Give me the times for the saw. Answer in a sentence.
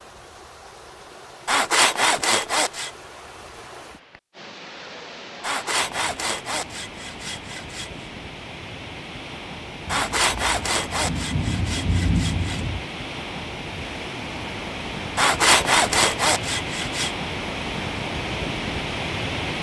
You can hear the saw from 1.4 to 2.9 s, from 5.4 to 8.1 s, from 9.8 to 12.7 s and from 15.2 to 17.1 s.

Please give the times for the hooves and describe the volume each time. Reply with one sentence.
You can't hear the hooves here.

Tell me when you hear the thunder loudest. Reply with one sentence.
The loudest moment of the thunder is at 12 seconds.